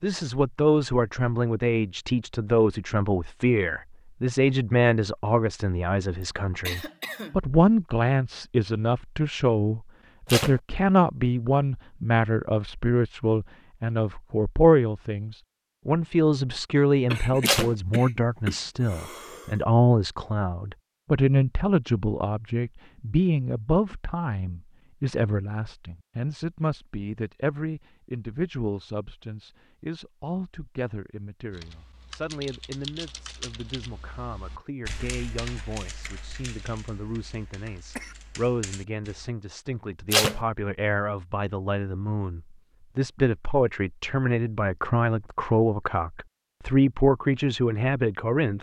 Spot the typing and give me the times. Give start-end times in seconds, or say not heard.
31.5-39.3.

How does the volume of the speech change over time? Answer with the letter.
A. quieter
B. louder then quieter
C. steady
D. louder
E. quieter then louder
E.